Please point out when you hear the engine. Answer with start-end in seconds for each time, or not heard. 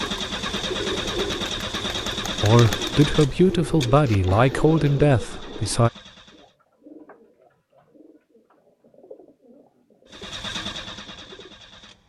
0.0-6.5, 10.1-12.0.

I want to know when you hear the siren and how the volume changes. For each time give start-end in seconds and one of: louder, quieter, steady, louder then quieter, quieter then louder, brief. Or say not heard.
not heard.